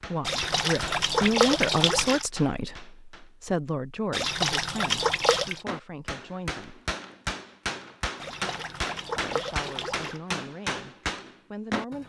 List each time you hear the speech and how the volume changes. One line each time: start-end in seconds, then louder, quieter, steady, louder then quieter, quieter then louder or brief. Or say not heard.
0.1-6.8 quieter
9.2-12.0 brief.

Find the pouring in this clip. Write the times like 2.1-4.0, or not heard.
0.2-2.2, 4.1-5.6, 8.2-10.2.